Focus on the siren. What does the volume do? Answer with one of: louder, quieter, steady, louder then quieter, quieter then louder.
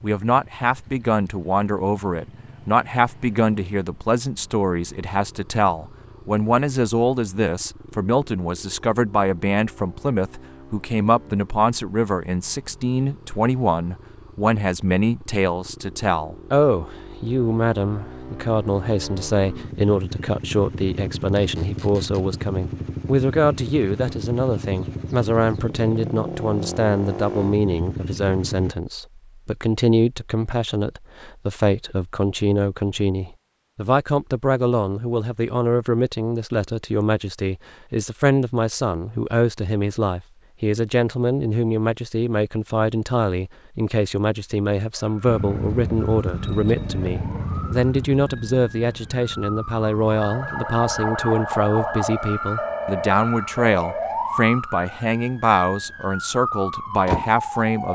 louder.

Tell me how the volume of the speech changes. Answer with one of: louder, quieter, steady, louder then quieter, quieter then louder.
steady.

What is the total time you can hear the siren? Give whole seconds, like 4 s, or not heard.
13 s.